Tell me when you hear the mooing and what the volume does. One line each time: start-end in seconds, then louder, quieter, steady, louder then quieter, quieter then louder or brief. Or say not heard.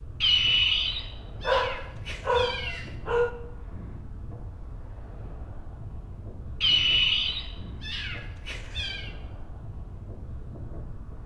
not heard.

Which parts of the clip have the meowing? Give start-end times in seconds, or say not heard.
0.2-2.9, 6.6-9.1.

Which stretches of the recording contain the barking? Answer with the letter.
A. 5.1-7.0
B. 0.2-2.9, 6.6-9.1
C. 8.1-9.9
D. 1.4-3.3
D.